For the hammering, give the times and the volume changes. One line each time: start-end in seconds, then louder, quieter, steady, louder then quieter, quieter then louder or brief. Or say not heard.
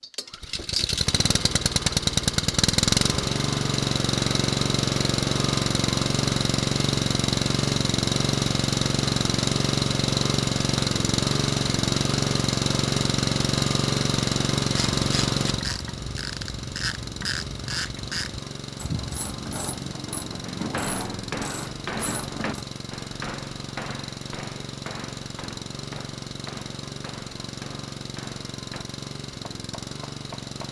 20.4-30.6 quieter.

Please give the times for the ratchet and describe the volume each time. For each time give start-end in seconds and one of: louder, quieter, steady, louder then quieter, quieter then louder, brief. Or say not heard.
14.8-22.6 steady.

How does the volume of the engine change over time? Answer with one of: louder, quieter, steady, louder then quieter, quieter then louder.
quieter.